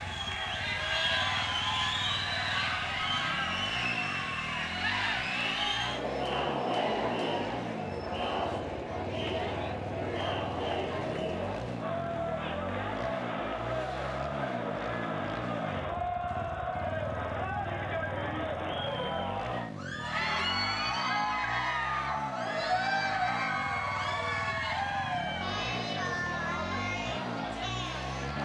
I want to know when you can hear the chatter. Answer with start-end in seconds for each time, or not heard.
0.0-28.4.